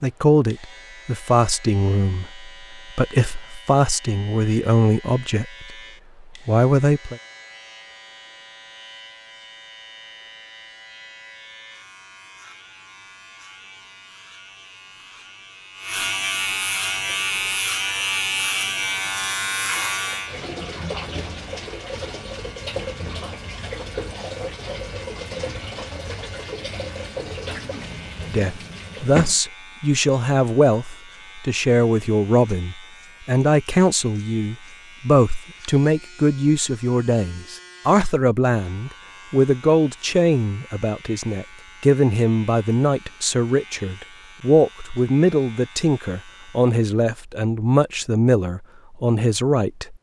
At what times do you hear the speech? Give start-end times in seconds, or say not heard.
0.0-5.8, 6.5-7.2, 28.2-49.9.